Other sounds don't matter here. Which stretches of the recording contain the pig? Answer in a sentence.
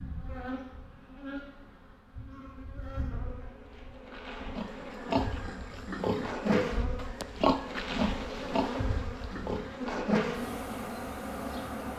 You can hear the pig from 4.5 to 10.1 s.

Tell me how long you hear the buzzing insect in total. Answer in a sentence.
The buzzing insect can be heard for 12 seconds in total.